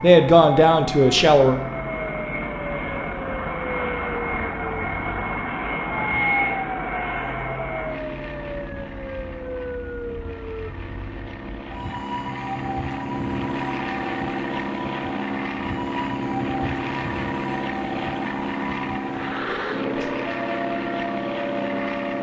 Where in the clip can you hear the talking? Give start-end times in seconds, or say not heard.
0.0-1.6.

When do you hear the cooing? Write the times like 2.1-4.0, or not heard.
not heard.